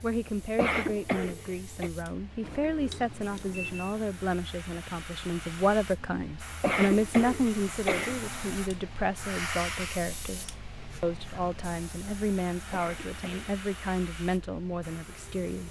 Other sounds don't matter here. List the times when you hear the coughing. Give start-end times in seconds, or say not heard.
0.6-1.9, 6.6-8.2, 12.7-13.5.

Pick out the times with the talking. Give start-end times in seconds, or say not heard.
0.0-15.6.